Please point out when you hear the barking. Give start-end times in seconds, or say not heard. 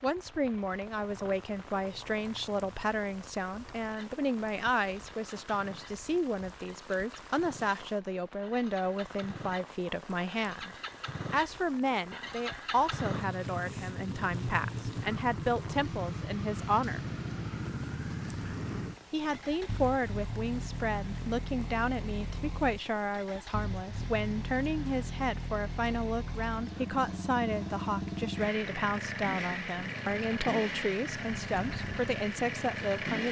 not heard.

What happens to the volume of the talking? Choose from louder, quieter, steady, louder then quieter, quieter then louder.
steady.